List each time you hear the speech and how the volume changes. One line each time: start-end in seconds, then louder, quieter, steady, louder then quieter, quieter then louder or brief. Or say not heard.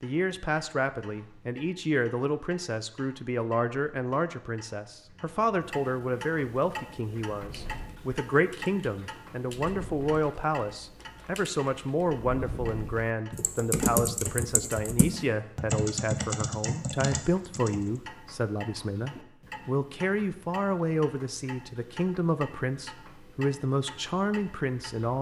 0.0-25.1 steady.